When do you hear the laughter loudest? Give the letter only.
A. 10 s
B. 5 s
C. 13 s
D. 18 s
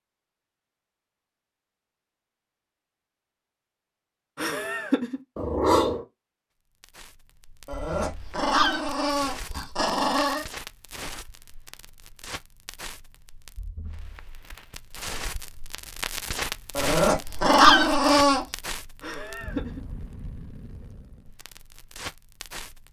B.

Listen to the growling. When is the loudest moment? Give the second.
18 s.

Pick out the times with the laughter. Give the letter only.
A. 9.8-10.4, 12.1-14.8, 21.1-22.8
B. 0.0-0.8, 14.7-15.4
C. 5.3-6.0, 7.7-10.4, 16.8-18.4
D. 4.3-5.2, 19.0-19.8
D.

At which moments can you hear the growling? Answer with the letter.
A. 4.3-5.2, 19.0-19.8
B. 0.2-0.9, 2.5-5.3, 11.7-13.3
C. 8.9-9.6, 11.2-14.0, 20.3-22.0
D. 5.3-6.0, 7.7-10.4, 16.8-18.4
D.